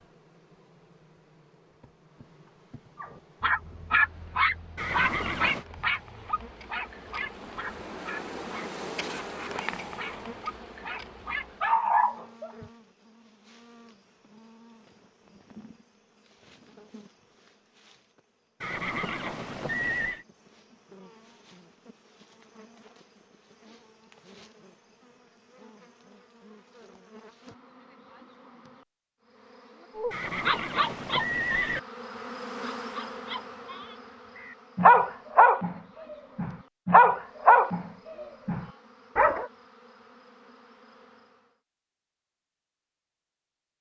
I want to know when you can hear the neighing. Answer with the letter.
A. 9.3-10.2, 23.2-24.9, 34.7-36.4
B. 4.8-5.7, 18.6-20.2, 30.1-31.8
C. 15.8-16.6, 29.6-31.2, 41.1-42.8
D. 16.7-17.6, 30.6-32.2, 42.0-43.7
B.